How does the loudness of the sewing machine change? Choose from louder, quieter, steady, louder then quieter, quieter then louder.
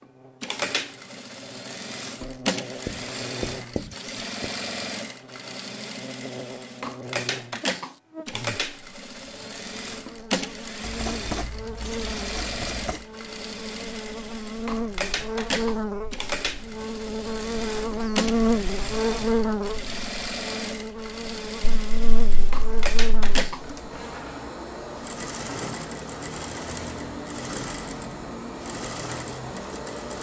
steady.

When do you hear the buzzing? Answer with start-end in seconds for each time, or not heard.
0.0-24.4.